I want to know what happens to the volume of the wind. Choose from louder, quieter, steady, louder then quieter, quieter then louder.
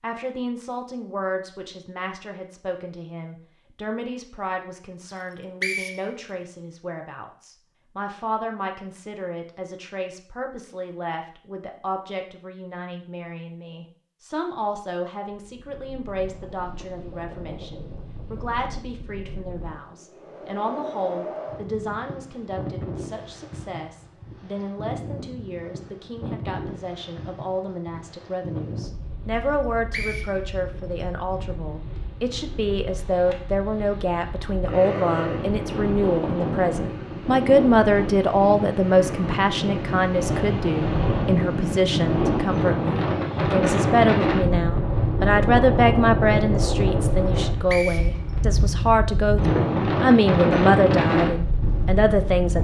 louder.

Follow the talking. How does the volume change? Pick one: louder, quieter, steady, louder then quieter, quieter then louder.
louder.